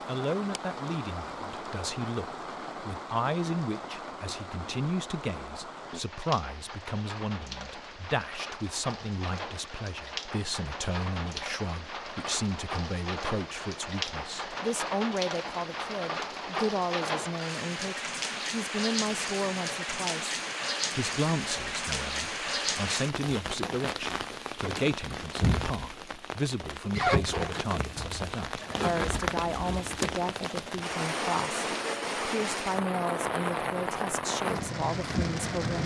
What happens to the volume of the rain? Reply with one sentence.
The volume of the rain goes up.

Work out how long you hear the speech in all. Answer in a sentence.
The speech can be heard for 36 seconds in total.